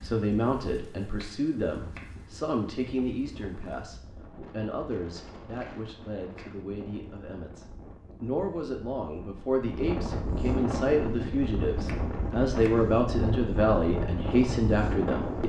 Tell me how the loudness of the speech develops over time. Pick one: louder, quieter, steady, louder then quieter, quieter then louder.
quieter then louder.